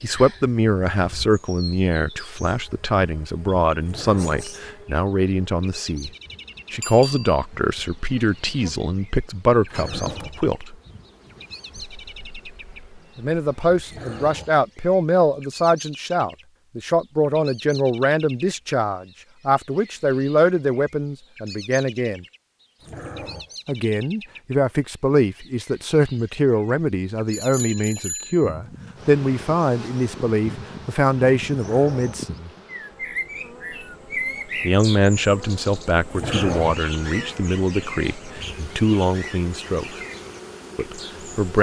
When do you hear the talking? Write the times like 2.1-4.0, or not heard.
0.0-6.1, 6.7-10.8, 13.2-22.2, 23.6-32.5, 34.6-40.0, 40.8-41.5.